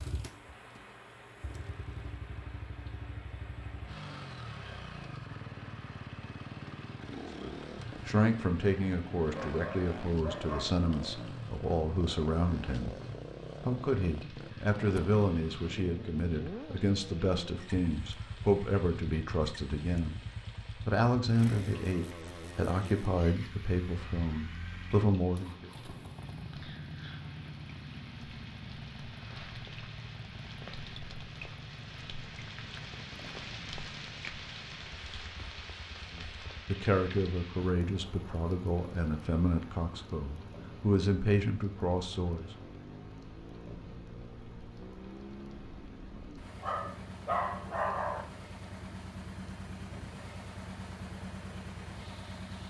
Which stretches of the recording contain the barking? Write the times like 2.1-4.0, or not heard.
9.3-10.7, 46.4-48.2.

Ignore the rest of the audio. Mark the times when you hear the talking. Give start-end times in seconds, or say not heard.
7.3-12.9, 13.6-20.2, 20.9-25.7, 36.1-42.5.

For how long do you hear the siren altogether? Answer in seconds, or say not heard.
not heard.